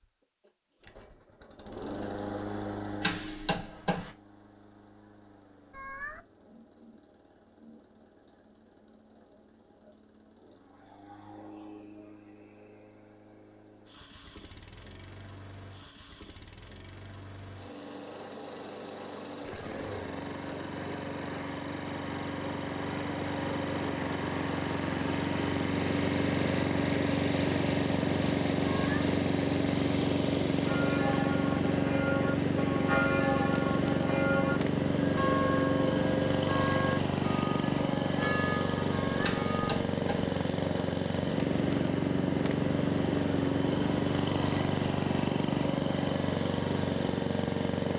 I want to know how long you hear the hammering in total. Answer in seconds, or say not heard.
2 s.